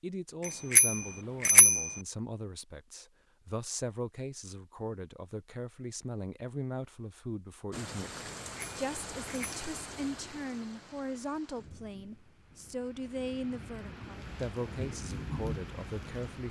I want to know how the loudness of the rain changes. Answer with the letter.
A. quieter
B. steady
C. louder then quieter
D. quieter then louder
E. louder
D.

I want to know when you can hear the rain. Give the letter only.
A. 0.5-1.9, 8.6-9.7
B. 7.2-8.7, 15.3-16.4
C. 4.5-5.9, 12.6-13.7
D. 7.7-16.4
D.